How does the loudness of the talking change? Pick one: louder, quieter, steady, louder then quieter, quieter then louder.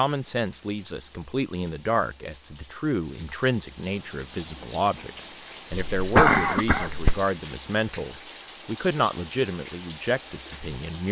steady.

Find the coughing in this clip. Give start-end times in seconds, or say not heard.
5.7-7.2.